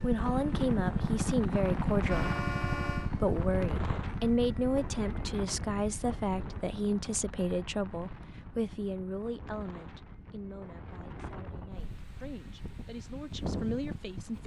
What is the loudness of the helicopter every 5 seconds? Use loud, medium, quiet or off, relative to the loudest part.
loud, quiet, quiet.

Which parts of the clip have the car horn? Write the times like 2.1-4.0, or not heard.
2.0-3.1.